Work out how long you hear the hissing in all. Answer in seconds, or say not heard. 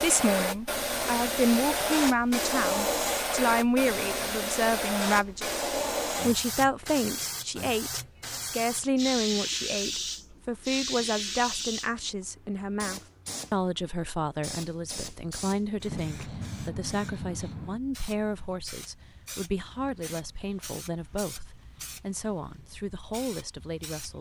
24 s.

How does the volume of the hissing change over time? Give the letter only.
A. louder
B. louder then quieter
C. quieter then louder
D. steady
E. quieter
E.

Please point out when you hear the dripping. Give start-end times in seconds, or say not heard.
not heard.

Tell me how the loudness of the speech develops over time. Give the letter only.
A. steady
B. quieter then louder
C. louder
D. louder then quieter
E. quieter
E.